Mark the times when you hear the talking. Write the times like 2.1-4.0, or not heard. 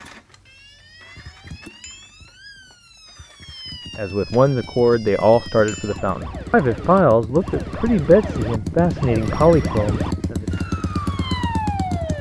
4.0-10.4.